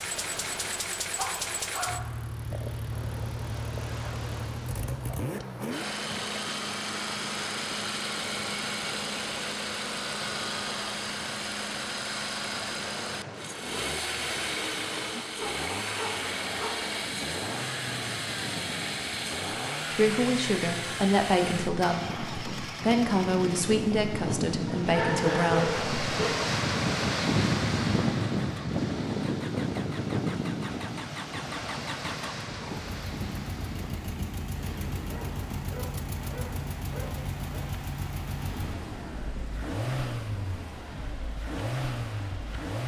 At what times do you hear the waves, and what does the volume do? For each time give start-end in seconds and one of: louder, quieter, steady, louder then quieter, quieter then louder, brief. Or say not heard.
0.0-42.8 louder then quieter.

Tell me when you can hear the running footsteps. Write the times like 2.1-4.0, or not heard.
not heard.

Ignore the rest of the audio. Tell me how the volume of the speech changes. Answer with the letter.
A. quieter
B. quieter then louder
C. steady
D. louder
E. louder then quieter
C.